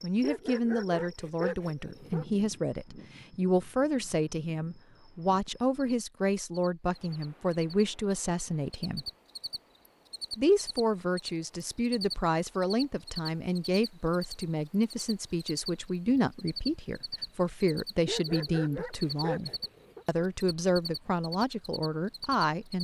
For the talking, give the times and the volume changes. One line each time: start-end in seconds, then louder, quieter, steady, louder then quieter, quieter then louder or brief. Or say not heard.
0.0-9.1 steady
10.3-22.8 steady.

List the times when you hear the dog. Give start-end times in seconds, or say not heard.
0.2-2.2, 18.1-20.1.